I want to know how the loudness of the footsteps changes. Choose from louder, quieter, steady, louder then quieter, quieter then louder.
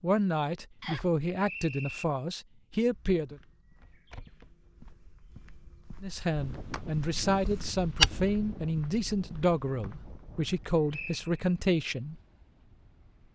louder then quieter.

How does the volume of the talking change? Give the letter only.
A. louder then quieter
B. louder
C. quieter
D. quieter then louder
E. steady
E.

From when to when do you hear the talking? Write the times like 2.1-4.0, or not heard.
0.0-3.4, 6.0-12.2.